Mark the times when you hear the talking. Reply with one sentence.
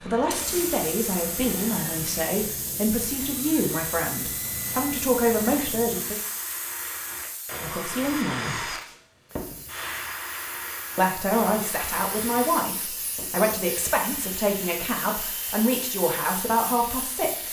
The talking can be heard from 0.0 to 6.2 s, from 7.6 to 8.7 s and from 10.9 to 17.4 s.